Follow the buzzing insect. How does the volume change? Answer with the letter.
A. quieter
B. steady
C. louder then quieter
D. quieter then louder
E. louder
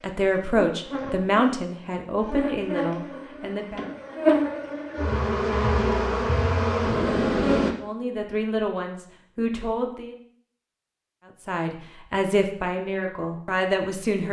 E.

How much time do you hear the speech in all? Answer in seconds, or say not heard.
9 s.